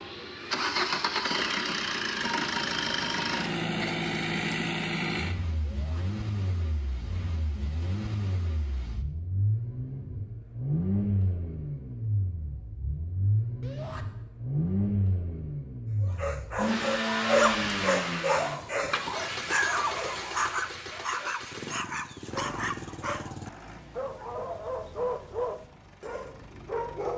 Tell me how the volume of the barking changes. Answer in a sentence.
The loudness of the barking goes down.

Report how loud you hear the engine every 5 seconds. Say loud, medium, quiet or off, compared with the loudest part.
loud, medium, loud, loud, quiet, quiet.